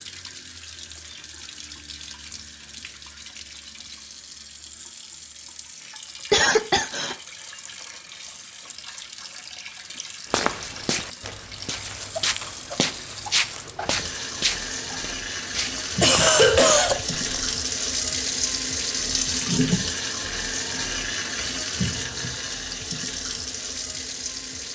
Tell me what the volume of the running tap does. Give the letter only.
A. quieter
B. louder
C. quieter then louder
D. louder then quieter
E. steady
B.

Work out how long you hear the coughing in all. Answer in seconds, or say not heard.
2 s.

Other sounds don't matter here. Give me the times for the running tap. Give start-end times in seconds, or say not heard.
0.0-24.6.